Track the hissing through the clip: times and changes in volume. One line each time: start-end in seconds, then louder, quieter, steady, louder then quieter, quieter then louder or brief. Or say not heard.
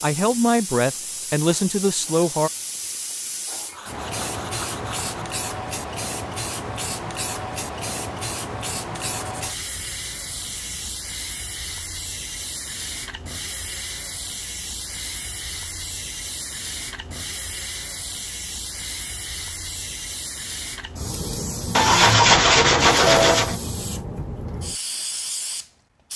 0.0-26.1 steady.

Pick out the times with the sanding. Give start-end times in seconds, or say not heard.
3.7-5.2, 9.1-10.9, 21.8-23.6.